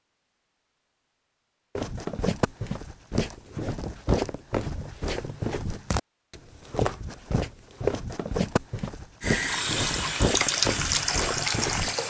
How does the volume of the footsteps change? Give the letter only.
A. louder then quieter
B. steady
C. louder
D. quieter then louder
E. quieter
B.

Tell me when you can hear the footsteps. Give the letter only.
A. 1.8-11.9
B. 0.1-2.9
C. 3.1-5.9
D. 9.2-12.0
A.